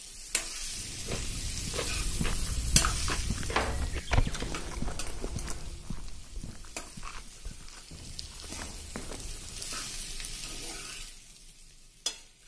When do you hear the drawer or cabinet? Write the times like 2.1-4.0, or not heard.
3.0-4.8.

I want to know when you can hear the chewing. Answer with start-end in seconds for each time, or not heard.
0.7-9.8.